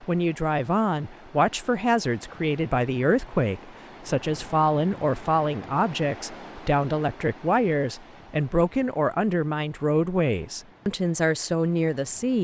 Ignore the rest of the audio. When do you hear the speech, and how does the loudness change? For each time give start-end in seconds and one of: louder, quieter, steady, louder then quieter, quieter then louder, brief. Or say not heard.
0.0-12.3 steady.